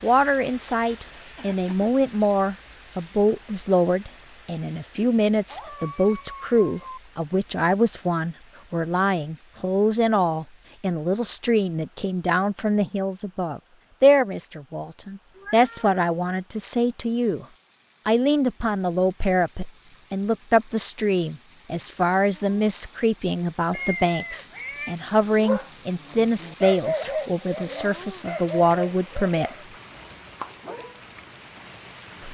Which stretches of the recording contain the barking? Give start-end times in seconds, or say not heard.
25.2-31.0.